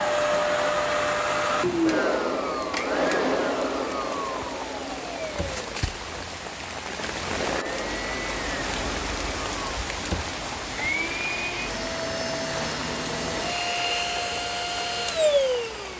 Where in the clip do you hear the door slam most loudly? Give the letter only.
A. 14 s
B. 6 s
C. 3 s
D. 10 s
D.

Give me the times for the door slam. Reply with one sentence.
The door slam can be heard from 5.2 to 5.7 s and from 9.9 to 10.3 s.